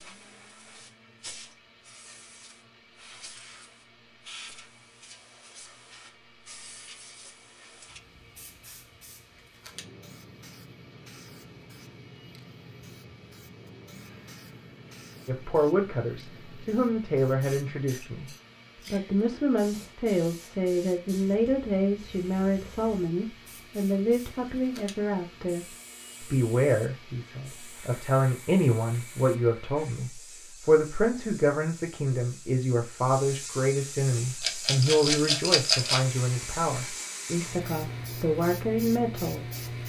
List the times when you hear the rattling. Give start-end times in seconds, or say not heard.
34.4-36.0.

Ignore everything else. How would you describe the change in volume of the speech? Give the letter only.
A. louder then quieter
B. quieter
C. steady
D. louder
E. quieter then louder
C.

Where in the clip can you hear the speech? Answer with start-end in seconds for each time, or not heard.
15.2-18.3, 18.9-39.4.